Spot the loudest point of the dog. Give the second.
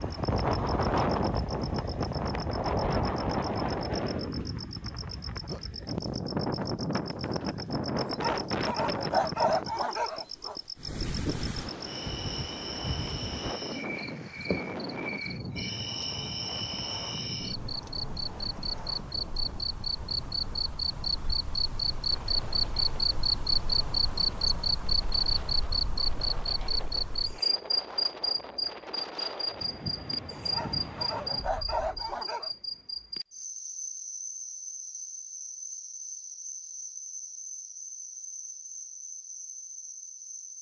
9 s.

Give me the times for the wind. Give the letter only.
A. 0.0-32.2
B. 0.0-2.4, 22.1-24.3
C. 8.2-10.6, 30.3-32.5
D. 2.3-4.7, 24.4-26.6
A.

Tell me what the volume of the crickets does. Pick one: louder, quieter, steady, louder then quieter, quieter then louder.
louder then quieter.